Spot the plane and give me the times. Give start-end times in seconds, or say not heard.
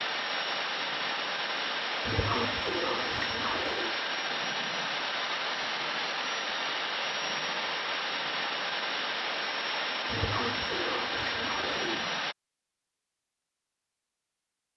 0.0-12.3.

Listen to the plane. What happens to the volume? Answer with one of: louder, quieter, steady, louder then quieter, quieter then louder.
steady.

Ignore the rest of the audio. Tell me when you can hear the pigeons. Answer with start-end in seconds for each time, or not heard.
2.0-4.0, 10.1-12.1.